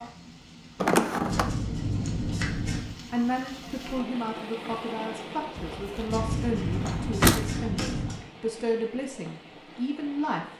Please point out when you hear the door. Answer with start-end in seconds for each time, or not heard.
0.8-1.6, 5.5-7.5.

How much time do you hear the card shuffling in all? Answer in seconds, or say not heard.
4 s.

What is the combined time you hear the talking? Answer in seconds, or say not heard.
7 s.